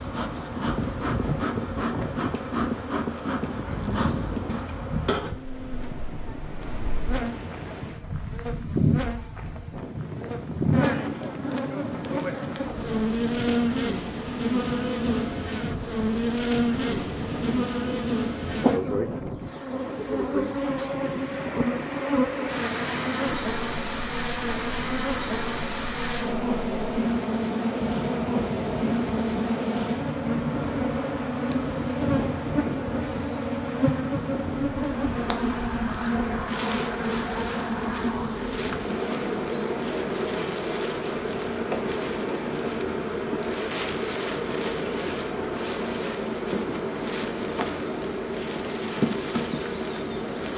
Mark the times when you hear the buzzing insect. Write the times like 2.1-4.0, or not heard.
0.0-50.5.